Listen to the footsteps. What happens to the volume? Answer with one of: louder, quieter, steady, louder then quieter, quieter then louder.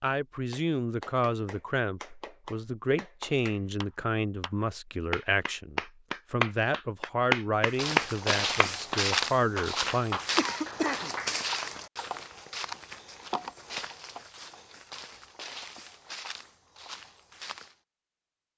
quieter.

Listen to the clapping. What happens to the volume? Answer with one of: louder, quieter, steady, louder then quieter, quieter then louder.
louder then quieter.